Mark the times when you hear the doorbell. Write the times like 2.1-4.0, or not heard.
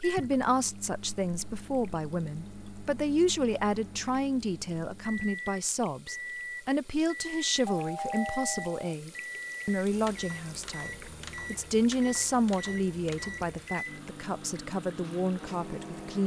7.7-8.9.